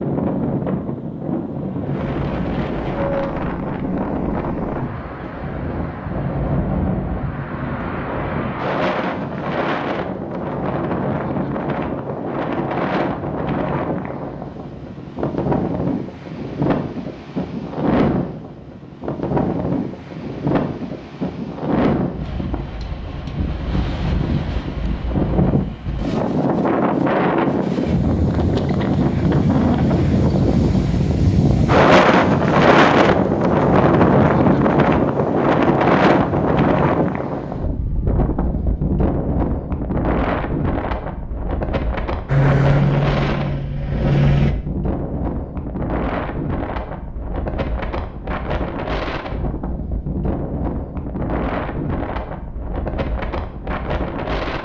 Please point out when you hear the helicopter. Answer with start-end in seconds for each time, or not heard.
42.2-44.5.